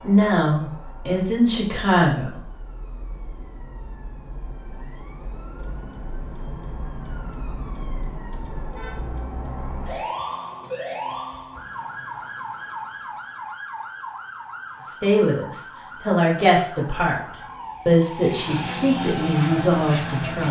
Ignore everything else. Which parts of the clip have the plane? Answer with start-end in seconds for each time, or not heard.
18.1-20.4.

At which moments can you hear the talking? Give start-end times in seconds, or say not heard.
0.0-2.4, 14.8-17.2, 17.9-20.4.